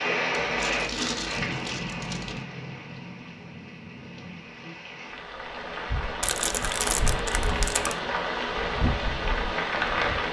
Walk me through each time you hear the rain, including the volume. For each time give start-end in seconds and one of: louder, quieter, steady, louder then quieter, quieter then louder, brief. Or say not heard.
0.0-10.2 quieter then louder.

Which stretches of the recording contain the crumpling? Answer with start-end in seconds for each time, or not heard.
0.3-2.4, 6.2-8.0.